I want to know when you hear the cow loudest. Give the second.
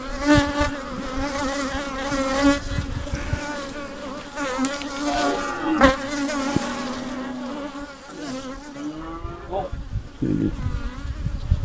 6 s.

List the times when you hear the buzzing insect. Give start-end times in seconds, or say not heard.
0.0-11.6.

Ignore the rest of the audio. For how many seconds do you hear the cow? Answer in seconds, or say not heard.
5 s.